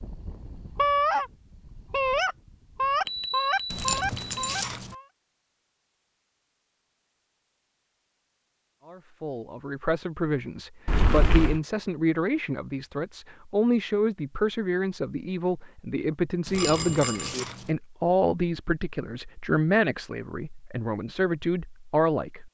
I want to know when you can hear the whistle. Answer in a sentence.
You can't hear the whistle here.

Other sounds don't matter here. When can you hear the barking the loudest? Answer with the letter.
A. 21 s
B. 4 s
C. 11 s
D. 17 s
B.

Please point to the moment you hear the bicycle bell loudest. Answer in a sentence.
The loudest moment of the bicycle bell is at 11 seconds.